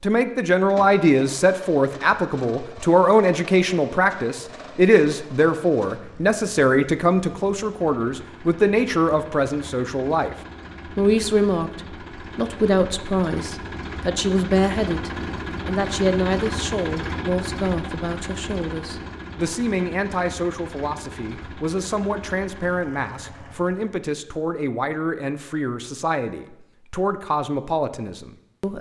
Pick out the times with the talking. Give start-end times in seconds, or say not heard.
0.0-10.3, 10.9-28.7.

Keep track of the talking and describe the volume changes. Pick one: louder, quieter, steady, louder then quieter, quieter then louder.
quieter.